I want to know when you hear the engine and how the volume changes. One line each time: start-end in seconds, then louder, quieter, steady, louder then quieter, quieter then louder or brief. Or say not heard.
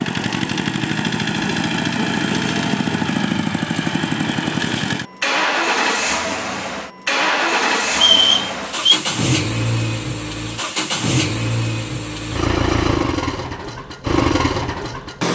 0.0-15.2 steady.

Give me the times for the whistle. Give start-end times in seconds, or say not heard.
7.9-9.0.